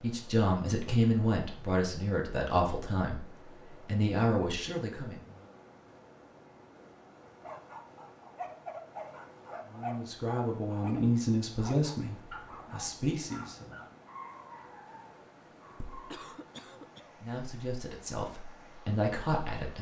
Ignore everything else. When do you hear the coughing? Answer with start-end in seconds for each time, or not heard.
16.1-17.2.